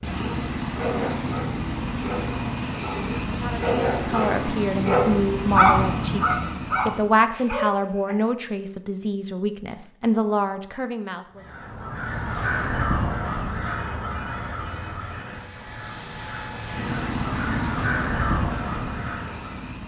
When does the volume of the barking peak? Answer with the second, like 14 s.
6 s.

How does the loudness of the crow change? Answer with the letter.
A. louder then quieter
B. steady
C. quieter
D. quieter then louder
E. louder
D.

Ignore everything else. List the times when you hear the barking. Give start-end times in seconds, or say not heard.
0.1-8.2.